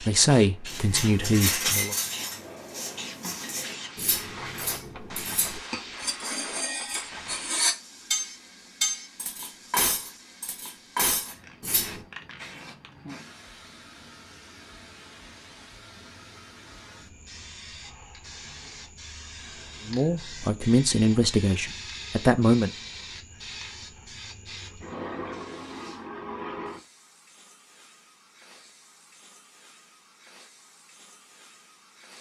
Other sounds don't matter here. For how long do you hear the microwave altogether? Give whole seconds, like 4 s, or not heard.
not heard.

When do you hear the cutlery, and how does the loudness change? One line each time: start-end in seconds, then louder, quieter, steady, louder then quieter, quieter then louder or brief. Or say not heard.
0.7-12.1 quieter then louder.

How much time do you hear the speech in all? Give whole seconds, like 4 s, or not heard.
5 s.